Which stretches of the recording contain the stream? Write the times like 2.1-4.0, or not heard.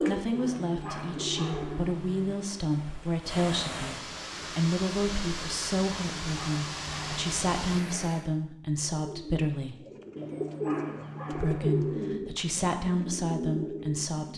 0.1-8.3.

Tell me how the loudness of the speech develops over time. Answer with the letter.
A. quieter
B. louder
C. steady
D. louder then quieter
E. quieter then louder
C.